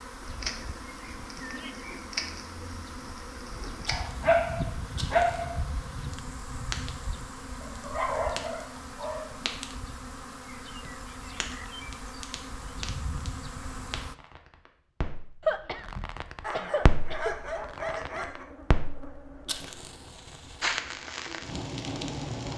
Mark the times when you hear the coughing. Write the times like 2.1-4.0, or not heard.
15.4-17.4.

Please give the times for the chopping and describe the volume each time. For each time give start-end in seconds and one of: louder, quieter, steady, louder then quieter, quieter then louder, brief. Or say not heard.
not heard.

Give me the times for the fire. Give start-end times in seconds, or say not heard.
0.1-22.5.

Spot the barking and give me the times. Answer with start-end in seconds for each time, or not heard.
3.9-5.6, 7.6-9.3, 16.4-18.4.